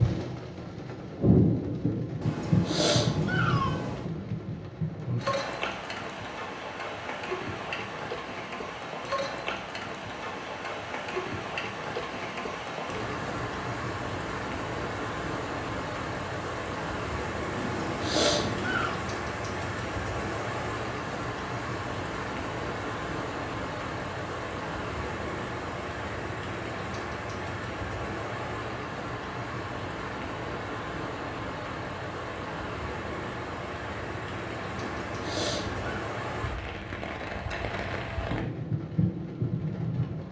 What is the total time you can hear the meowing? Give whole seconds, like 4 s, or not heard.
5 s.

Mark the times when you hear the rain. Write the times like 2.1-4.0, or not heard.
0.0-40.2.